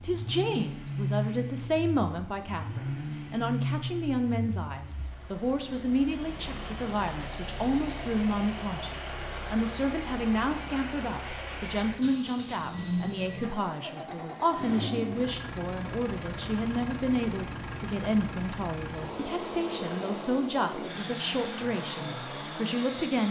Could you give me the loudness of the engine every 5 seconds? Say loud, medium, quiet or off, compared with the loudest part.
loud, medium, loud, loud, loud.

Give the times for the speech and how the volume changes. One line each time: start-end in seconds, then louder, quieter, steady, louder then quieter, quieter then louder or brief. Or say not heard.
0.0-23.2 steady.